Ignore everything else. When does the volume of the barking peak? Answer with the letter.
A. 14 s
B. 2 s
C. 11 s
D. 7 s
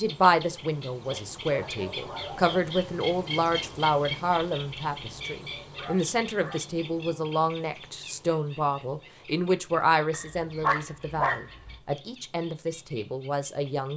C.